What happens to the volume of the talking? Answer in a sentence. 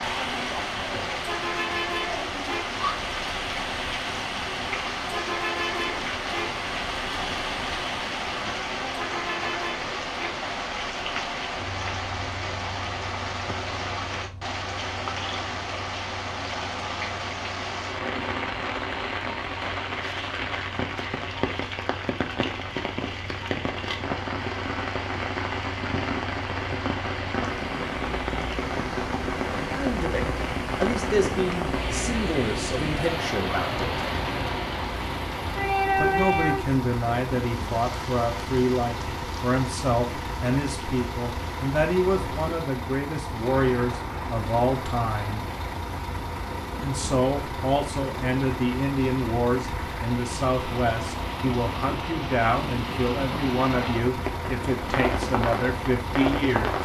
The volume of the talking stays about the same.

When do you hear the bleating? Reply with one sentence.
The bleating can't be heard in this clip.